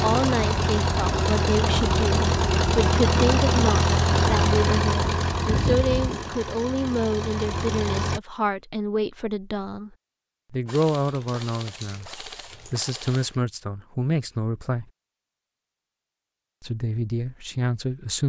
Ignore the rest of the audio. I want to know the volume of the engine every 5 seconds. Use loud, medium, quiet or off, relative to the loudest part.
loud, medium, off, off.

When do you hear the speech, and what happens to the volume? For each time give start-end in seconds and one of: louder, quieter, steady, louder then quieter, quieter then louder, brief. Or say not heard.
0.0-9.9 steady
10.5-14.8 quieter then louder
16.6-18.2 brief.